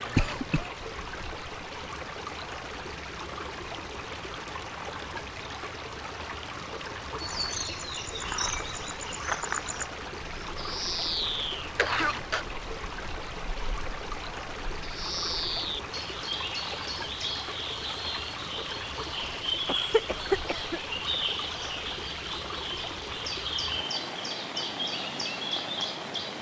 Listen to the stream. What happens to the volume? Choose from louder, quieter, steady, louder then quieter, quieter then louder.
steady.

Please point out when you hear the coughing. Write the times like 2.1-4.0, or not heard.
0.1-0.7, 11.8-12.4, 19.6-20.8.